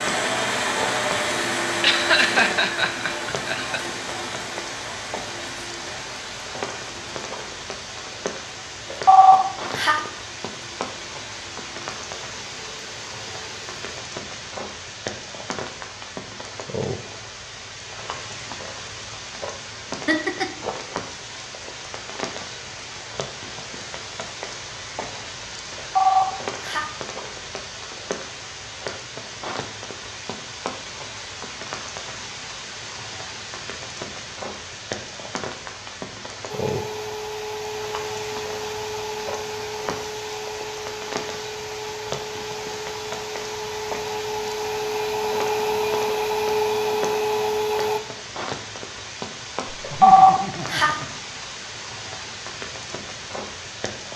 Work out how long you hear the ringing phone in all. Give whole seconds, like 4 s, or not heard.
3 s.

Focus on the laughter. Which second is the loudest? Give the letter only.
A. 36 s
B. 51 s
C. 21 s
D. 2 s
D.